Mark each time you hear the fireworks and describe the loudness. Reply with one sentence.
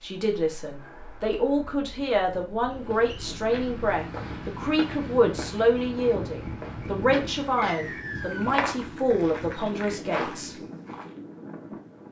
The fireworks can't be heard in this clip.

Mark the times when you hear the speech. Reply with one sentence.
You can hear the speech from 0.0 to 10.6 s.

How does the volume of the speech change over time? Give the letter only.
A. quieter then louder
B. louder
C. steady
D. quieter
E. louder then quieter
C.